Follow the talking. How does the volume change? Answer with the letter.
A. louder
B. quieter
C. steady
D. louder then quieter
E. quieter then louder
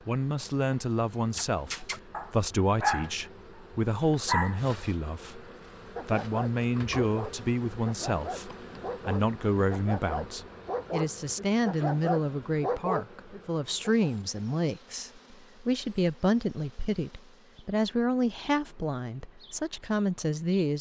C.